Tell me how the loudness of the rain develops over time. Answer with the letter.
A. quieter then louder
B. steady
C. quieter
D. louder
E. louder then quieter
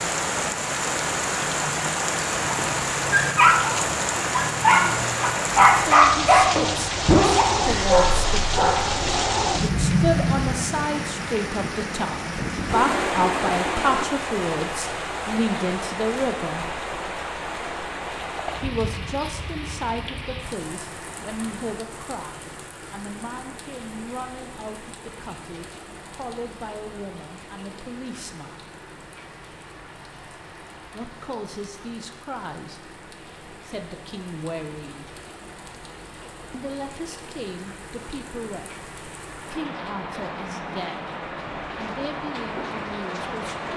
A.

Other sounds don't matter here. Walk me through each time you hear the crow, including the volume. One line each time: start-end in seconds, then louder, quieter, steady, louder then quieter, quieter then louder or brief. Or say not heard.
not heard.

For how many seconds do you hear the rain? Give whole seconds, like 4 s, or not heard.
44 s.